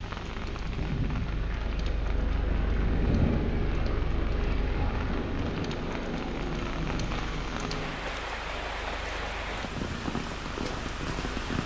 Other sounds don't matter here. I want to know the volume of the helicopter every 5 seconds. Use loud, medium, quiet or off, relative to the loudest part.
loud, loud, medium.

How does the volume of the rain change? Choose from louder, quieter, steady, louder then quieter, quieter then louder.
louder.